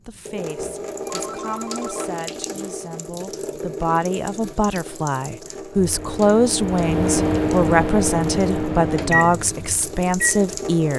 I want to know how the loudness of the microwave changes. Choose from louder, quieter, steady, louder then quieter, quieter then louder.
louder then quieter.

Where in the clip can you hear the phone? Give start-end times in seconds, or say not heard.
1.1-2.1.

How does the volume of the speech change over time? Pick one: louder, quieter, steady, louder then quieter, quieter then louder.
louder.